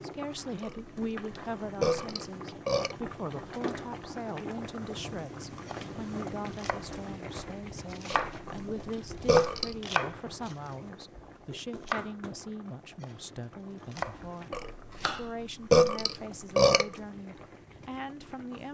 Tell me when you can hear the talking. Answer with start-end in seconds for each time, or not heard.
0.0-18.6.